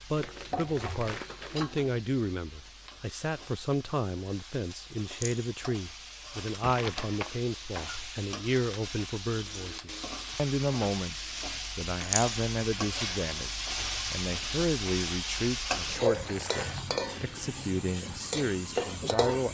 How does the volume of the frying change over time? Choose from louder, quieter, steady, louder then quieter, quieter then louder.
louder.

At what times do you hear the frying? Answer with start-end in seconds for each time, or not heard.
0.0-19.4.